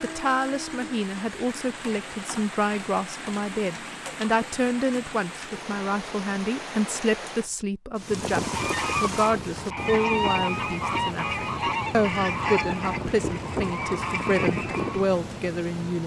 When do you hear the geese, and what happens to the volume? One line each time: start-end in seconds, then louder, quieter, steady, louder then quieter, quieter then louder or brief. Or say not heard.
8.0-15.2 steady.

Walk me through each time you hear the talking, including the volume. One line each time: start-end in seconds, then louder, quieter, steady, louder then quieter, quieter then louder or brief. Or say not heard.
0.0-16.0 steady.